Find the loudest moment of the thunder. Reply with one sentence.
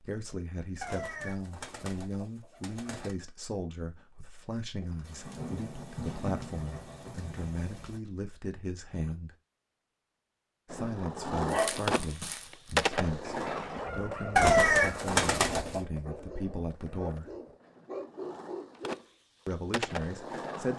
The volume of the thunder peaks at 6 seconds.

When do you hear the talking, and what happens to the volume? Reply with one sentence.
You can hear the talking from 0.0 to 9.3 s, at a steady volume; from 10.7 to 17.3 s, at a steady volume; and briefly from 19.4 to 20.7 s.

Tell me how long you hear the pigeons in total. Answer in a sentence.
The pigeons can be heard for 4 seconds in total.